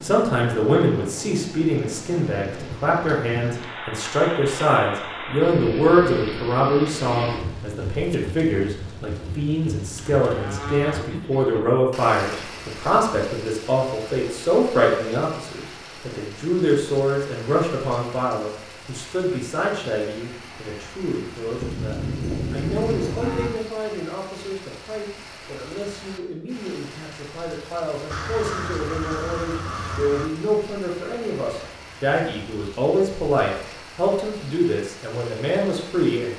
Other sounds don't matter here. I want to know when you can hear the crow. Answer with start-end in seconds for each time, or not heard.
28.1-30.3.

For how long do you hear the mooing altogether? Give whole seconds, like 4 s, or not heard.
4 s.